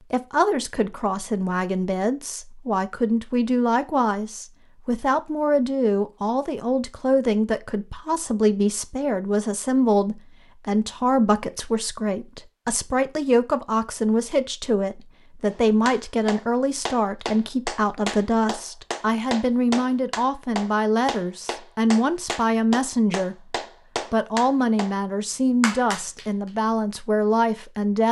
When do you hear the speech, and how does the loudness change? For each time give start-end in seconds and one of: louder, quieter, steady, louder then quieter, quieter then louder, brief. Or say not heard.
0.1-28.0 steady.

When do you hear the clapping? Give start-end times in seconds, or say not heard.
15.5-24.9, 25.6-26.3.